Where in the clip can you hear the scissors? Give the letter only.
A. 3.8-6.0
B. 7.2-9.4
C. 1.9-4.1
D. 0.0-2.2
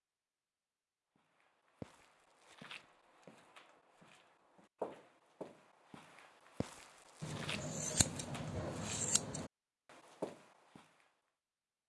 B.